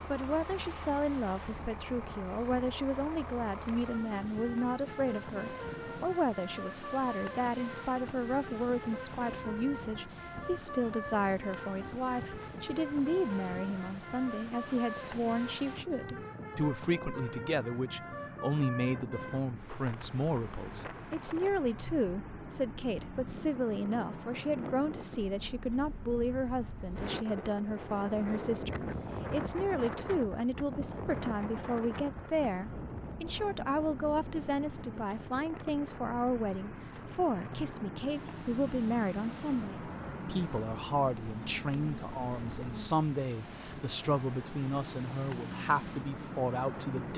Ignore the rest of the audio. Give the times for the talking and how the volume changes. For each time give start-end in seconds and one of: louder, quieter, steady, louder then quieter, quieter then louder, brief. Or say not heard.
0.1-47.1 steady.